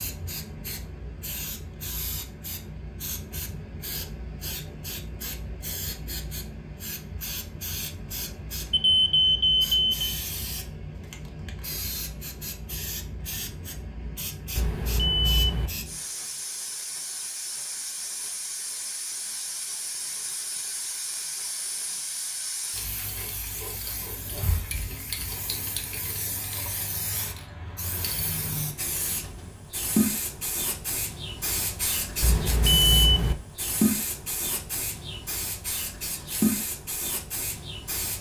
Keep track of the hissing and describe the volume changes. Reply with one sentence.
The volume of the hissing goes up.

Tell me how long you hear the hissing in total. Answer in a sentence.
The hissing can be heard for 38 seconds in total.